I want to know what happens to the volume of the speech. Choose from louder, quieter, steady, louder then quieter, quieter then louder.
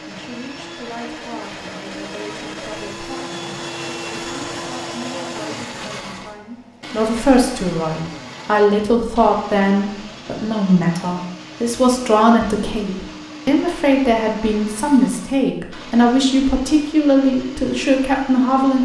louder.